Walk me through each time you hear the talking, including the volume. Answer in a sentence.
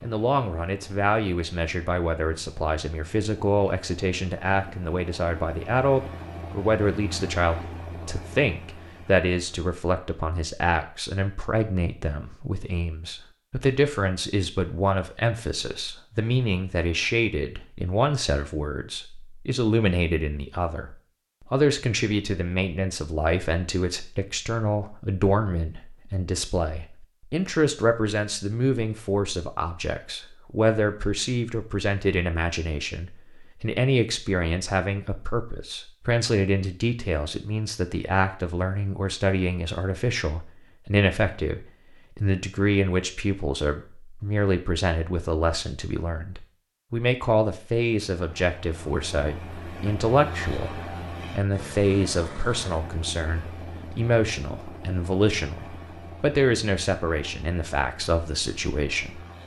You can hear the talking from 0.0 to 59.2 s, at a steady volume.